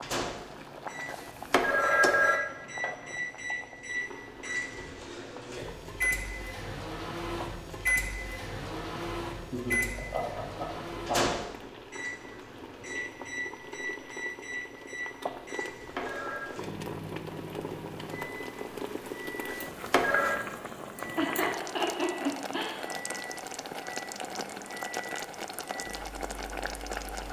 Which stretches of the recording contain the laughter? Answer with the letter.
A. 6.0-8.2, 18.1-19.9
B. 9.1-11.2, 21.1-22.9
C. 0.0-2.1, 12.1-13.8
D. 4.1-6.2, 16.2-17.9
B.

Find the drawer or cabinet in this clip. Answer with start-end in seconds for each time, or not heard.
not heard.